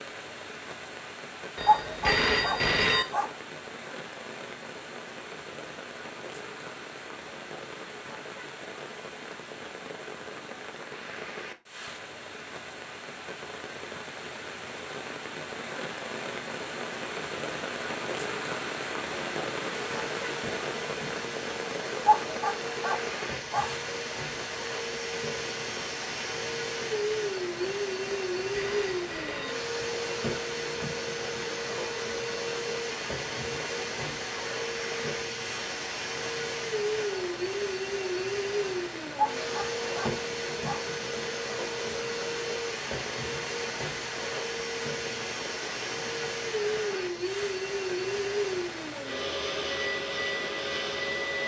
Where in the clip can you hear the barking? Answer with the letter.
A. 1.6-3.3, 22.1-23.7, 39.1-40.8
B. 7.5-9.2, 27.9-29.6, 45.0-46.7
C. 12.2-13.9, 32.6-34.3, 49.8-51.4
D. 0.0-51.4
A.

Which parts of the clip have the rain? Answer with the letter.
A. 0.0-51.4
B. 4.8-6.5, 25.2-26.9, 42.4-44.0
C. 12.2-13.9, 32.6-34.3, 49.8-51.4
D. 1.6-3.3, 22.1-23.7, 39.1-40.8
A.